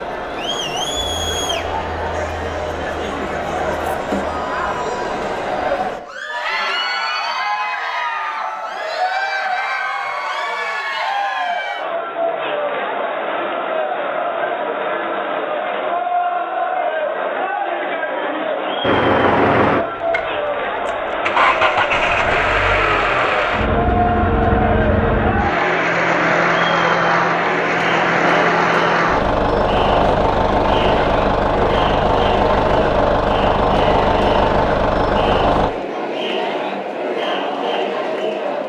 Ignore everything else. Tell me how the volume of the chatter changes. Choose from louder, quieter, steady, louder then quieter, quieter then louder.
steady.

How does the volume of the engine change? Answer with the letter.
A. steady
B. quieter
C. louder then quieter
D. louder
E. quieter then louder
A.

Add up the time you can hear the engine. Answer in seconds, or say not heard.
17 s.